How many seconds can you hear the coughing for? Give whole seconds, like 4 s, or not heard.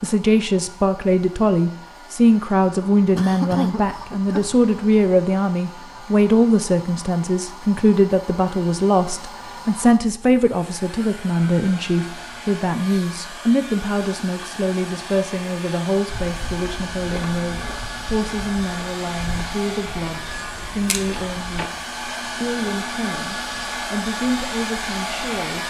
2 s.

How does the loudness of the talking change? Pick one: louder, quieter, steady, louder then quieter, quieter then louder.
quieter.